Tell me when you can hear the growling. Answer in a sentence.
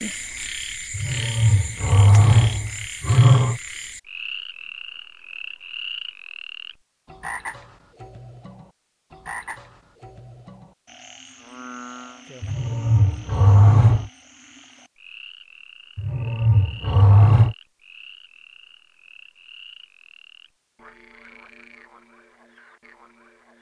You can hear the growling from 0.9 to 3.6 s, from 12.4 to 14.1 s and from 15.9 to 17.6 s.